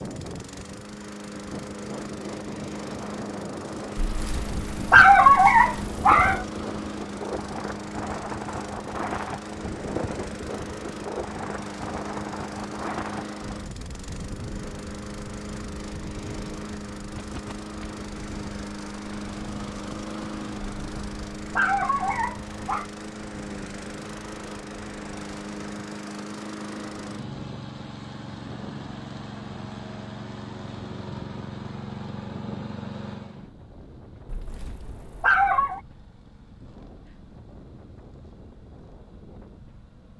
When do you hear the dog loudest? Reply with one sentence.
The loudest moment of the dog is at 5 seconds.